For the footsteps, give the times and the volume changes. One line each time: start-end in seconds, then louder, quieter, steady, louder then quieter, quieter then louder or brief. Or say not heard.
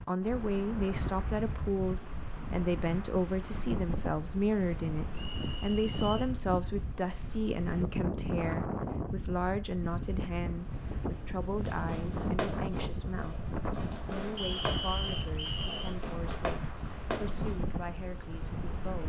not heard.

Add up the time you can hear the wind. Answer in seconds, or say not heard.
19 s.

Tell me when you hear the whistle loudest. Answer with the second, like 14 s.
15 s.